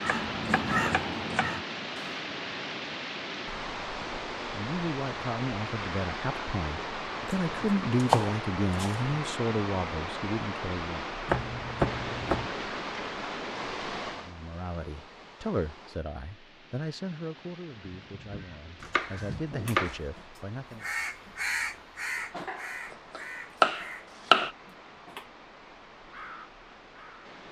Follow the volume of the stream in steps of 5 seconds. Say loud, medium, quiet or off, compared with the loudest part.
loud, loud, loud, quiet, quiet, quiet.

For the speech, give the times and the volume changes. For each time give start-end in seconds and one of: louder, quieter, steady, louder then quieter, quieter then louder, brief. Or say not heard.
4.5-11.2 louder then quieter
14.2-20.9 quieter then louder.